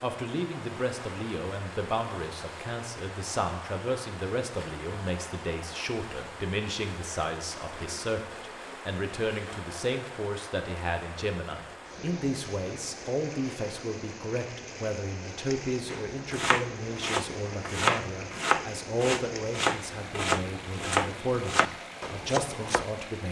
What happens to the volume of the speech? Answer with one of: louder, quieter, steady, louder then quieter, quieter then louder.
steady.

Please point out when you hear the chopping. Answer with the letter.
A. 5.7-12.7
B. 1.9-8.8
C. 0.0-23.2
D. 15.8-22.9
D.